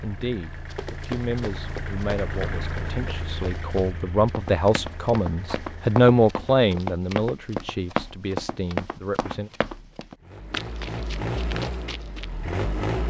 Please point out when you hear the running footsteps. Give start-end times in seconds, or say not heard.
0.7-12.2.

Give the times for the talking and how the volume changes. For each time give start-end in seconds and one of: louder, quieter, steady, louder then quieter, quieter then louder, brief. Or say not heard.
0.0-9.5 louder then quieter.